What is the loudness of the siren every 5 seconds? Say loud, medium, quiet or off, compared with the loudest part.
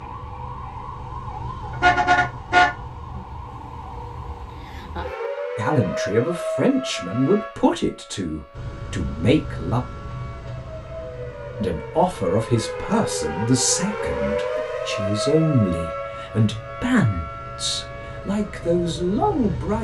medium, loud, loud, loud.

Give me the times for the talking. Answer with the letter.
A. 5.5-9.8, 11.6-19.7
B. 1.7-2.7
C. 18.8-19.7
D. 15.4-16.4
A.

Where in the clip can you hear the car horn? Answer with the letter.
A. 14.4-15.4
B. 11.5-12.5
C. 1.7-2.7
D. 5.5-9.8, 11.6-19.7
C.